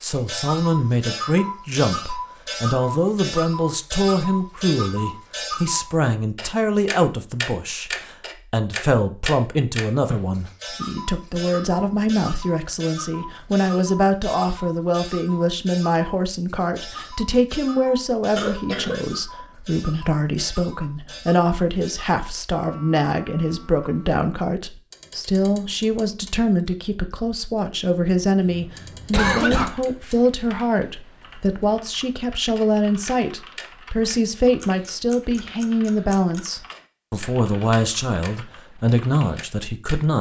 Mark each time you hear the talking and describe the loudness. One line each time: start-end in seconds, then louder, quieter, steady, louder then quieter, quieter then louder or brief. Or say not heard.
0.0-40.1 steady.